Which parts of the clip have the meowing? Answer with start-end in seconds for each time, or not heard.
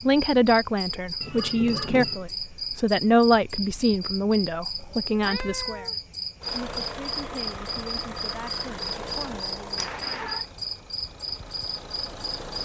1.2-2.2, 4.8-6.0, 9.8-10.4.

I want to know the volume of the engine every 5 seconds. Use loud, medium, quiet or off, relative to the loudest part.
off, loud, medium.